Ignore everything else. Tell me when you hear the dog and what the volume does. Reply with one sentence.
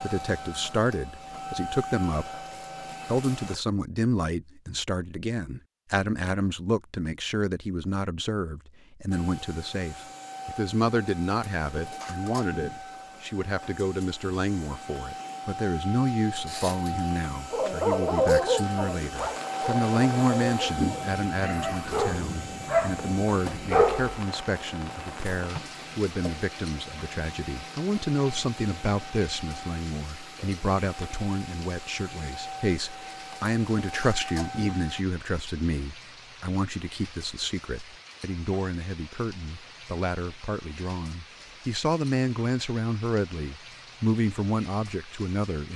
You can hear the dog from 17.5 to 24.1 s, getting quieter then louder.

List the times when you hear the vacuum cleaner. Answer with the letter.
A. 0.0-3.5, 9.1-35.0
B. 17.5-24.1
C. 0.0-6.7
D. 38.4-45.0
A.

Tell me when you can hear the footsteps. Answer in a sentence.
You can't hear the footsteps here.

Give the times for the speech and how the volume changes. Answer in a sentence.
You can hear the speech briefly from 0.0 to 2.5 s; and from 3.0 to 45.7 s, at a steady volume.